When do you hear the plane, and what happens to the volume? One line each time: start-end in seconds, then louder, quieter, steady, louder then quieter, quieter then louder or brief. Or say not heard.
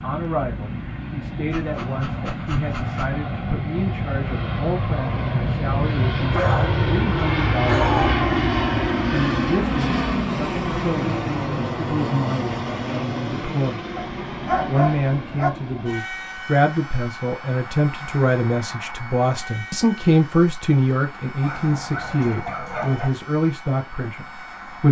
0.0-24.8 louder then quieter.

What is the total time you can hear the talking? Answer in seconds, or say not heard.
23 s.